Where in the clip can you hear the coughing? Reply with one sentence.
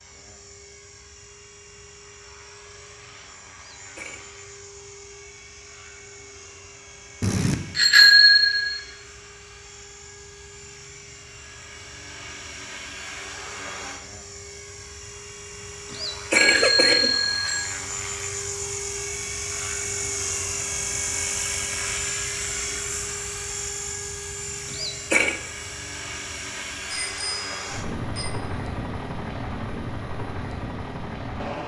The coughing can be heard from 3.5 to 4.2 s, from 15.9 to 17.1 s and from 24.7 to 25.4 s.